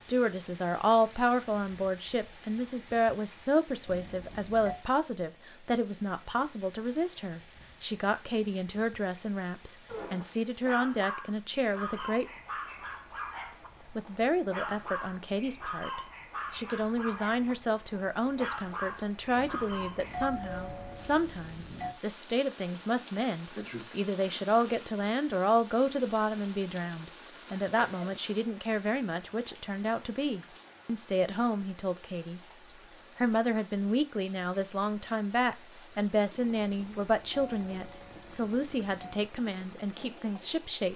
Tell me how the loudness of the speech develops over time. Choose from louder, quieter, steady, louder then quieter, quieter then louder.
steady.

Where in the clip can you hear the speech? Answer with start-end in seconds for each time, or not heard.
0.0-12.2, 13.9-32.4, 33.1-40.9.